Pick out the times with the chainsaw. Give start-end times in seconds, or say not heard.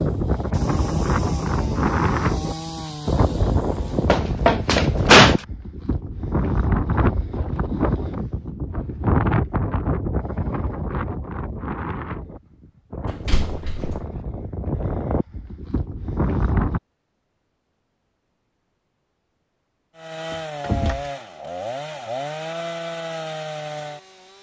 0.0-4.2, 19.9-24.3.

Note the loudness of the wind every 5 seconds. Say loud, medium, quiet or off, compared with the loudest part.
loud, loud, medium, loud, off.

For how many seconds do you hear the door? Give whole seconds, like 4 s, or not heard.
3 s.